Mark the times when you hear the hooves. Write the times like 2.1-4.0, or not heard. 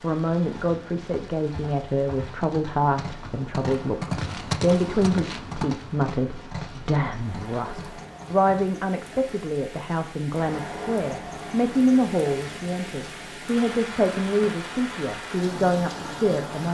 0.3-8.7.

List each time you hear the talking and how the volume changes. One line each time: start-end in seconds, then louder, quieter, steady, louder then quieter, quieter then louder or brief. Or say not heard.
0.0-16.6 steady.